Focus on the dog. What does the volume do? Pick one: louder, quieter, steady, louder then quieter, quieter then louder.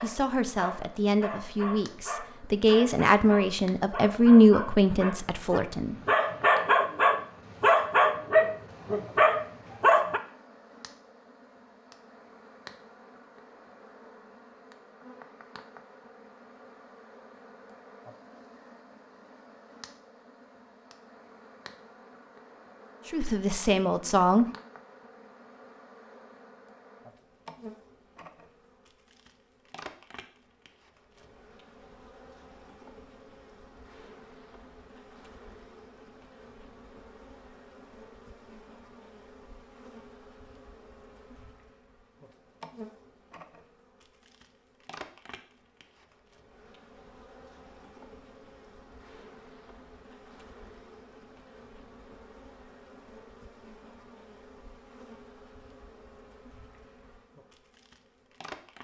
louder.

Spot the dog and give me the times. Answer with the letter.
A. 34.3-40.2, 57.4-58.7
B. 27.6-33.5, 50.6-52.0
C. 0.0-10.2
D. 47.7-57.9
C.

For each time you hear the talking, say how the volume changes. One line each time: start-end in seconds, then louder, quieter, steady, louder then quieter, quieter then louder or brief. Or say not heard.
0.0-6.0 louder then quieter
23.1-24.4 brief.